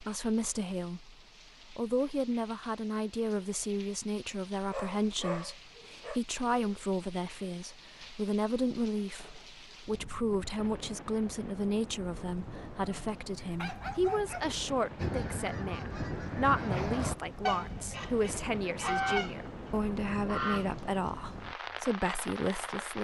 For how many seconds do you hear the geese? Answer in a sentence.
You can hear the geese for 6 seconds altogether.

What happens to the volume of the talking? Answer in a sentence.
The volume of the talking stays about the same.